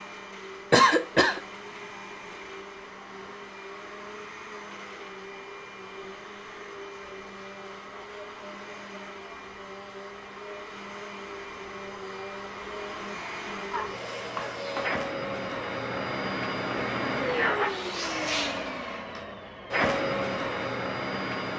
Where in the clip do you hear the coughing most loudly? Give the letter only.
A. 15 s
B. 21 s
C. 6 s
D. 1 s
D.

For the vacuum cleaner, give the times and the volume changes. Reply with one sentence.
You can hear the vacuum cleaner from 0.0 to 21.5 s, getting louder.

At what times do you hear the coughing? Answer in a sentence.
The coughing can be heard from 0.7 to 1.4 s and from 13.7 to 14.6 s.